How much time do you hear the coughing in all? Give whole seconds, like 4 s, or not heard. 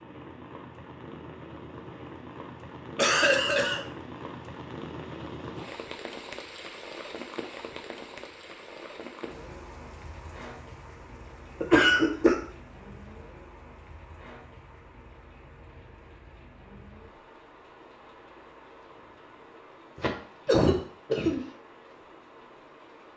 3 s.